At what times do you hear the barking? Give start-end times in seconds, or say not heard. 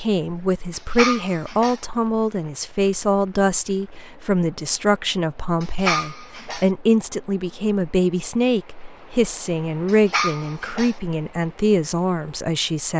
0.7-1.8, 5.6-6.7, 9.8-10.9.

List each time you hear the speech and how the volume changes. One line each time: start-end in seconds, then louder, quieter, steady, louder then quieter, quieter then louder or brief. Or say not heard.
0.0-12.9 steady.